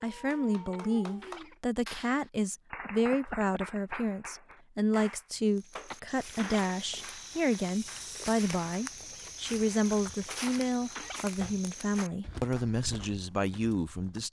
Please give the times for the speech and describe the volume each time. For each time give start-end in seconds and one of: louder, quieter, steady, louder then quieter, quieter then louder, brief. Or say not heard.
0.0-14.2 steady.